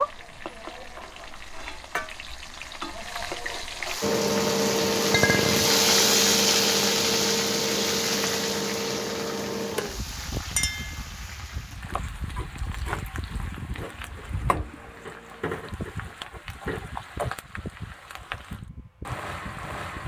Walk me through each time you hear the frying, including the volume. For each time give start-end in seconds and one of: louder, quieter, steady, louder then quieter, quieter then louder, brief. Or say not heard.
0.0-20.0 louder then quieter.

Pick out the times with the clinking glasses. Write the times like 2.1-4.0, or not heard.
5.1-5.8, 10.6-11.1.